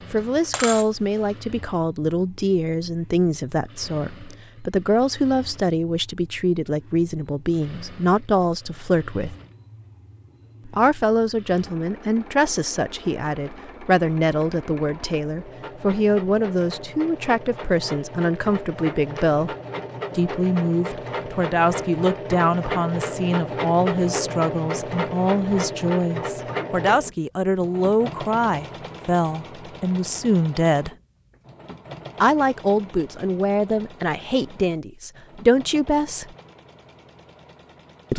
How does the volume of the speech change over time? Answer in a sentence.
The loudness of the speech stays about the same.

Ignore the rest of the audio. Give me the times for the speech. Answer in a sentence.
The speech can be heard from 0.1 to 9.3 s, from 10.7 to 19.6 s, from 20.1 to 30.9 s and from 32.2 to 36.3 s.